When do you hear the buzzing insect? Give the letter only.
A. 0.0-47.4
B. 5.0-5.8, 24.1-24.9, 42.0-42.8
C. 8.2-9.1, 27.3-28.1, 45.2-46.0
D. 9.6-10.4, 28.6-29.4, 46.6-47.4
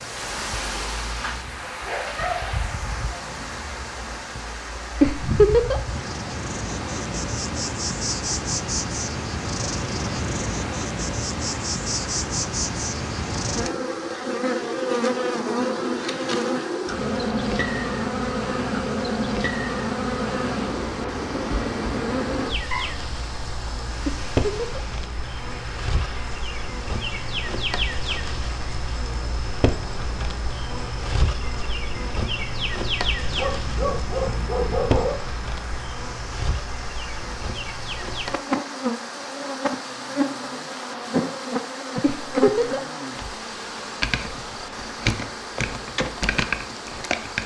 A.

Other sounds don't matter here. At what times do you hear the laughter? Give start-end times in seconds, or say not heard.
5.0-5.8, 24.1-24.9, 42.0-42.8.